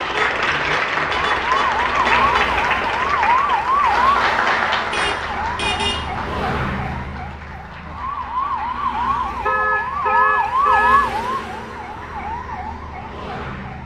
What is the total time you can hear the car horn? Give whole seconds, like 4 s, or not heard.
5 s.